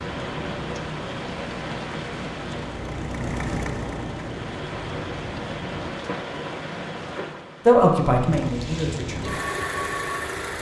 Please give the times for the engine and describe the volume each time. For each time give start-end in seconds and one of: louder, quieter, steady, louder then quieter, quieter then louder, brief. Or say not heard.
0.1-5.9 louder then quieter
8.3-10.5 brief.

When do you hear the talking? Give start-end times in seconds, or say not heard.
7.7-9.3.